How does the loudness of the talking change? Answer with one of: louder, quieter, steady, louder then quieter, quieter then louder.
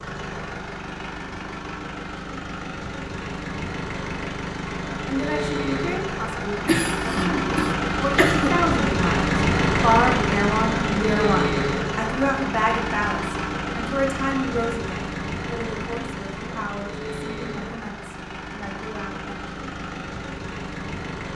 louder then quieter.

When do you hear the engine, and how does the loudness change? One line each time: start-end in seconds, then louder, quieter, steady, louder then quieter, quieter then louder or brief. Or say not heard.
0.0-21.3 louder then quieter.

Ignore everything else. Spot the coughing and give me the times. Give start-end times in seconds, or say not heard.
6.7-8.7.